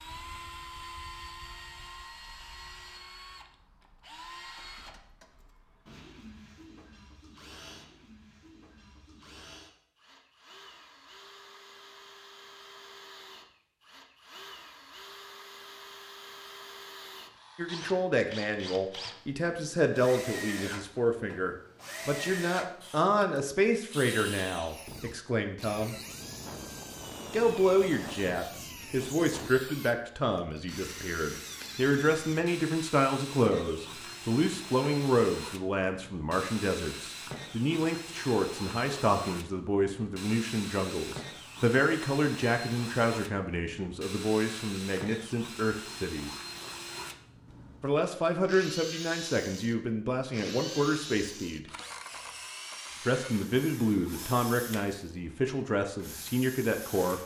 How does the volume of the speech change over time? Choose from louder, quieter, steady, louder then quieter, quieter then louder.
steady.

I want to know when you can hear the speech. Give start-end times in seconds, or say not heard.
17.6-25.9, 27.3-46.3, 47.8-51.6, 53.0-57.2.